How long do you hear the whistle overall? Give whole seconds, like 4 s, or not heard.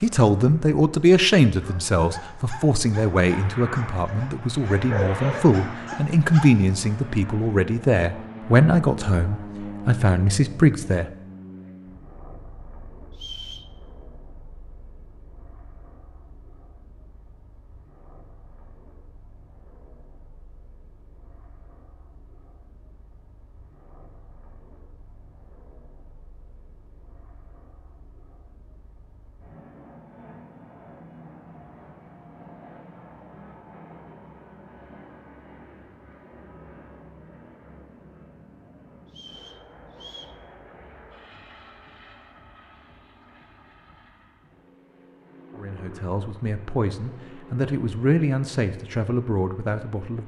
2 s.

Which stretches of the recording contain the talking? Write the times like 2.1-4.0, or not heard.
0.0-11.1, 45.5-50.2.